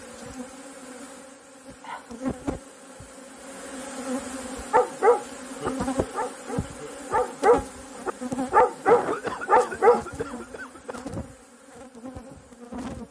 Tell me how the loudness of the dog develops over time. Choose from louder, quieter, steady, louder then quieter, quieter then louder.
quieter then louder.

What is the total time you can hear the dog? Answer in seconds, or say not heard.
5 s.